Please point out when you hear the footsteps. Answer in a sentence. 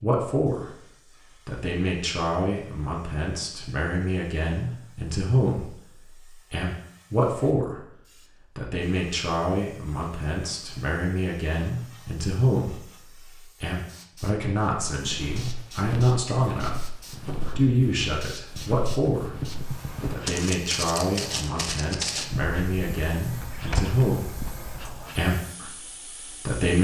You can hear the footsteps from 14.9 to 25.0 s.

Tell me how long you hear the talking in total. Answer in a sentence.
You can hear the talking for 23 seconds altogether.